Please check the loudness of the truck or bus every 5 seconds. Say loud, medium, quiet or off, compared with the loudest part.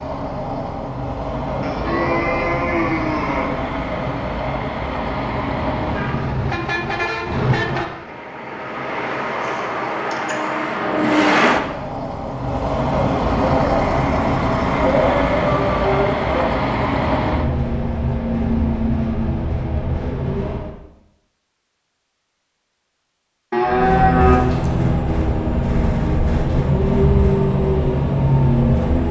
medium, medium, loud, loud, loud, loud.